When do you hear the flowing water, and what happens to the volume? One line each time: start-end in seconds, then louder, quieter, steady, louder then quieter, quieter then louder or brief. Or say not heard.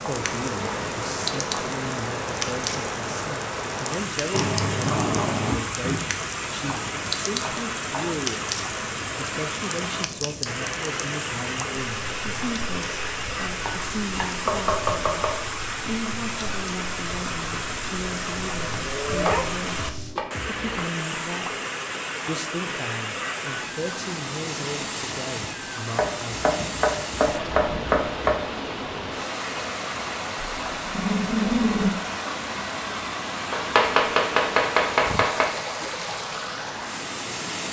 0.0-37.6 steady.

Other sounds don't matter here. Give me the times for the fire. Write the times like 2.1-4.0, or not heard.
0.0-20.1.